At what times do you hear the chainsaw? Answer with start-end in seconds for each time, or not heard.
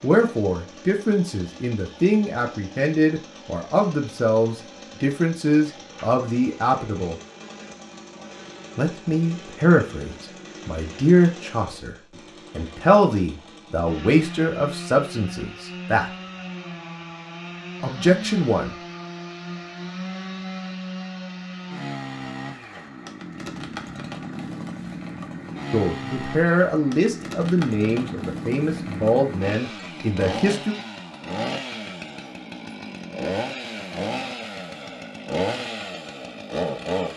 0.0-37.1.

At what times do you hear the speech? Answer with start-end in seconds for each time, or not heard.
0.0-7.2, 8.8-16.1, 17.8-18.8, 25.7-30.8.